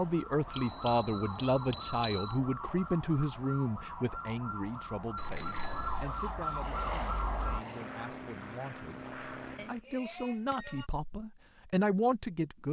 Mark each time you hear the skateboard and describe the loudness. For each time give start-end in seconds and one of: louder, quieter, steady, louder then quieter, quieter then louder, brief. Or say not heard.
not heard.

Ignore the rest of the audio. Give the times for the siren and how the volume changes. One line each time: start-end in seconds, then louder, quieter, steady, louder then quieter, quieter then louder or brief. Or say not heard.
0.0-7.7 louder.